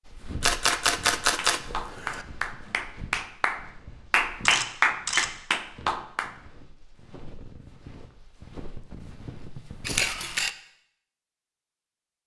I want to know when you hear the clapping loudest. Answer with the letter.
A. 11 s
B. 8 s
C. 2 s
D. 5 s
D.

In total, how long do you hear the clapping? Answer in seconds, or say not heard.
6 s.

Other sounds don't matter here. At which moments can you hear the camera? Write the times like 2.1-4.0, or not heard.
0.4-2.2, 4.5-5.3, 9.8-10.5.